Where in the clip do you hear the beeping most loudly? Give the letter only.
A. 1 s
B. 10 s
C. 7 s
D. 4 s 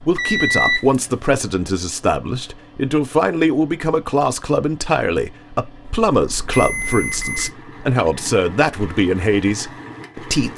A.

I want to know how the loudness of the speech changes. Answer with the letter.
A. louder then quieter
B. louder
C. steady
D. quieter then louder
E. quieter
C.